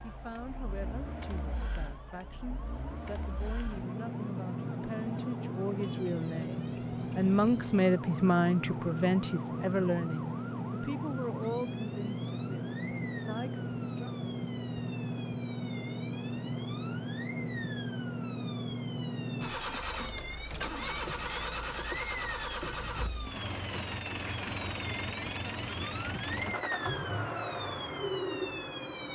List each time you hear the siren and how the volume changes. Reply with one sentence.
The siren can be heard from 0.0 to 29.0 s, getting louder.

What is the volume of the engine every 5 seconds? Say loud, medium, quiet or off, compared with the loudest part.
medium, loud, loud, loud, loud, loud.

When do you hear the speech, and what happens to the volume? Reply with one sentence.
The speech can be heard from 0.0 to 14.2 s, getting louder then quieter.